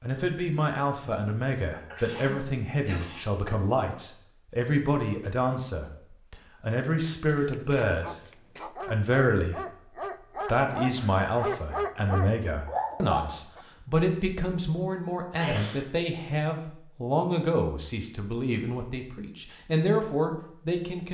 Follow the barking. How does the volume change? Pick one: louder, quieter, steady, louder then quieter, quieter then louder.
louder.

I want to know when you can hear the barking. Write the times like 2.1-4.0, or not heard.
8.0-13.7.